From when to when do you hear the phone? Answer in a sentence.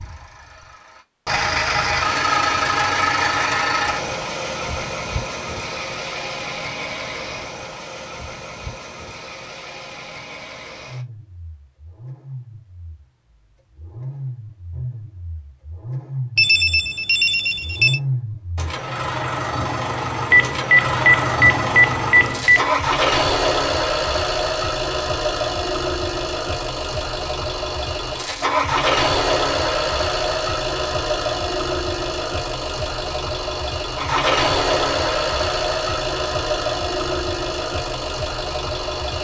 You can hear the phone from 16.4 to 18.0 s and from 20.3 to 22.8 s.